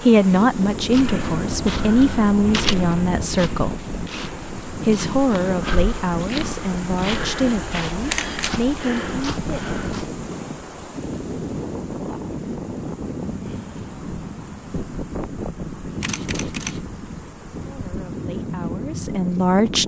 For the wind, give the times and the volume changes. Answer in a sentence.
The wind can be heard from 0.0 to 19.8 s, at a steady volume.